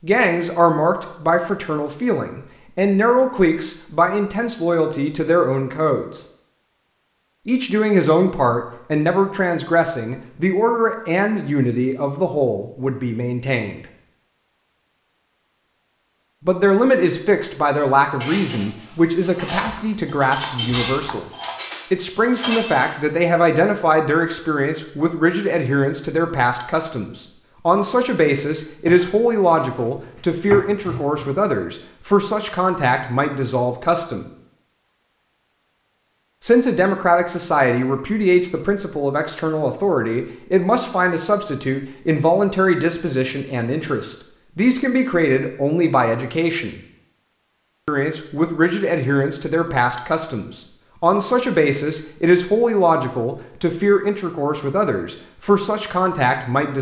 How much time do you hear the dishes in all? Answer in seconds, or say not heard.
5 s.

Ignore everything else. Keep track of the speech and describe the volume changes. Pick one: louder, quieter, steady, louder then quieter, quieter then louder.
steady.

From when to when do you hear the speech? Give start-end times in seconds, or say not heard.
0.0-6.2, 7.5-13.8, 16.4-21.3, 21.9-34.2, 36.4-46.8, 47.9-56.7.